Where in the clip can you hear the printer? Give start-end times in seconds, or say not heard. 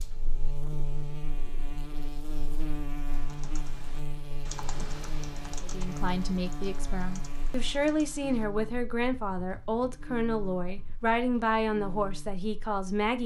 not heard.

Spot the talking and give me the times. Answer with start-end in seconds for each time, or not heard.
5.7-13.2.